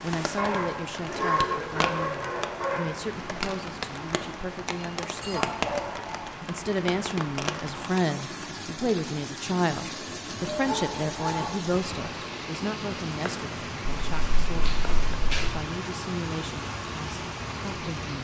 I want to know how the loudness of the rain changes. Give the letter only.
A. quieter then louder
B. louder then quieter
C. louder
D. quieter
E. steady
E.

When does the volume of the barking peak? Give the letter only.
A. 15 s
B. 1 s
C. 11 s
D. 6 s
B.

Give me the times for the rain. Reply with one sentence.
The rain can be heard from 0.0 to 18.1 s.